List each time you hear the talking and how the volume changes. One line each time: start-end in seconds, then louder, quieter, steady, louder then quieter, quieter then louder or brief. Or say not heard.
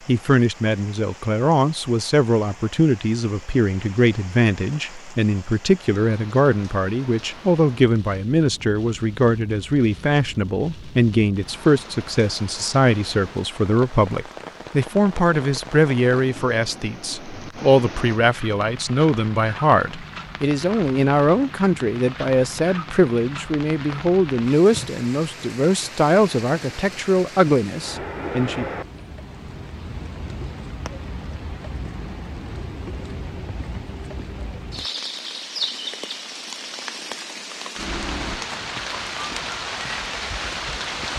0.1-28.6 steady.